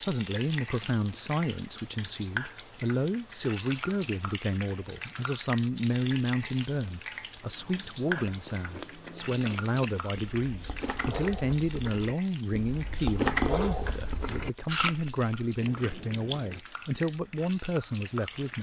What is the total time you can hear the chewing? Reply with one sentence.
You can hear the chewing for 9 seconds altogether.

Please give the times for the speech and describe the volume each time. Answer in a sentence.
The speech can be heard from 0.0 to 18.5 s, at a steady volume.